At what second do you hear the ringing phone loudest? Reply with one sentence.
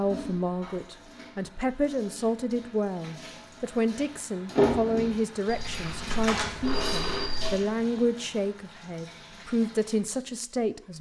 The loudest moment of the ringing phone is at 7 seconds.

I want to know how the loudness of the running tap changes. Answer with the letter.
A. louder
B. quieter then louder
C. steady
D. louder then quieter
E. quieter
D.